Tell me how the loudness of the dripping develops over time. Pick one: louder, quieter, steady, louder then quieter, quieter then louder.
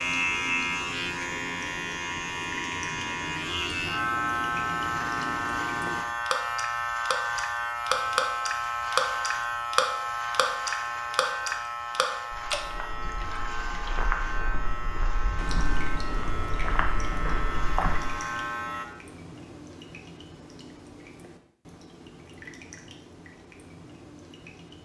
louder then quieter.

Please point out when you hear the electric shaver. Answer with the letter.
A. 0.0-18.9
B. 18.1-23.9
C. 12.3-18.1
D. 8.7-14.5
A.